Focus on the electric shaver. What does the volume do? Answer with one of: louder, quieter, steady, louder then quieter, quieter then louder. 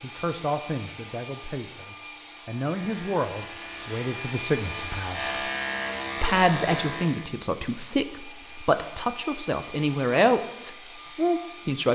louder.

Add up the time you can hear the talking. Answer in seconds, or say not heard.
11 s.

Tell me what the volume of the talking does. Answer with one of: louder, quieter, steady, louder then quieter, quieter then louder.
louder.